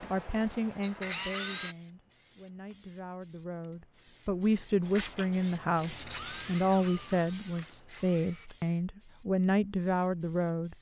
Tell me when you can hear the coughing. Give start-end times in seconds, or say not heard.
not heard.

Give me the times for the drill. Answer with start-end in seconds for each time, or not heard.
0.0-1.8, 4.8-8.5.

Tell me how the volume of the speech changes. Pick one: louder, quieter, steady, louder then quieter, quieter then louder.
louder.